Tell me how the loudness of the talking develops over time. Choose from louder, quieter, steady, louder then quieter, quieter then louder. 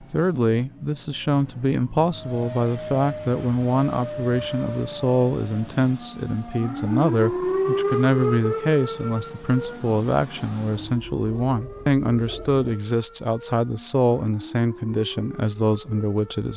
steady.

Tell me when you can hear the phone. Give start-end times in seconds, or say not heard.
not heard.